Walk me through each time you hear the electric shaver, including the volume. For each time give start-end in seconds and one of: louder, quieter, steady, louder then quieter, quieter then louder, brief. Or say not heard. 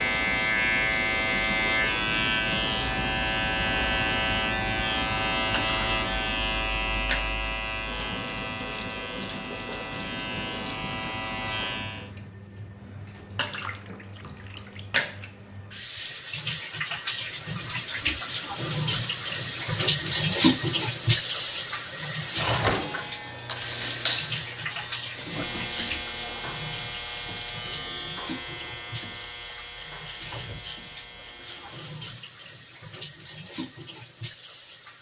0.0-12.1 quieter
22.3-32.0 quieter.